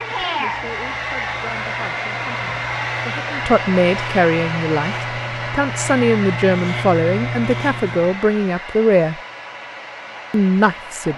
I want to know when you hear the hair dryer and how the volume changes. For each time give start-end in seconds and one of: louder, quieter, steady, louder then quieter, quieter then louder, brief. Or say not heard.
0.0-11.1 quieter.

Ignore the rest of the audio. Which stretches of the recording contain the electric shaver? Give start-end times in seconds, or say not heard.
0.0-8.2.